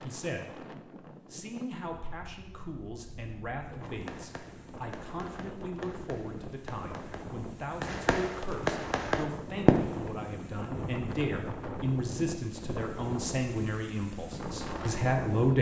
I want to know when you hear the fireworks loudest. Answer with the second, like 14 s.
10 s.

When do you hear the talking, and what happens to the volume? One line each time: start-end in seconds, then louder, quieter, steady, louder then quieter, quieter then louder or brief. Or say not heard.
0.0-15.5 louder.